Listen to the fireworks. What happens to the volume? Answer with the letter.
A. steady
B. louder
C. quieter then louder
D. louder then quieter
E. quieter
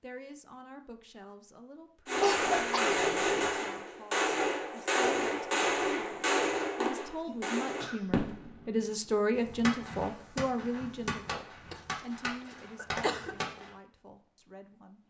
E.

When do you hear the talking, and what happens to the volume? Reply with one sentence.
You can hear the talking from 0.0 to 15.0 s, getting louder then quieter.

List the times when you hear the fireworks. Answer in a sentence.
You can hear the fireworks from 2.0 to 13.7 s.